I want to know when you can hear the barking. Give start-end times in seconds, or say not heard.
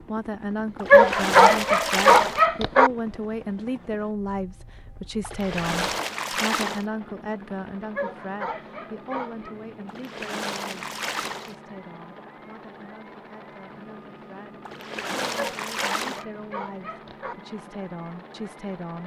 0.9-2.9, 8.0-9.6, 15.3-17.4.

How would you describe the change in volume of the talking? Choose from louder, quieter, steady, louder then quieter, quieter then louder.
quieter then louder.